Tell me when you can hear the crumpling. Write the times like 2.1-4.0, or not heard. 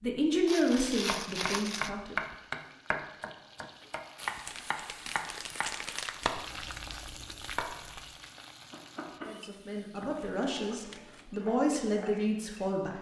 0.5-1.9, 4.5-6.3, 10.0-11.3.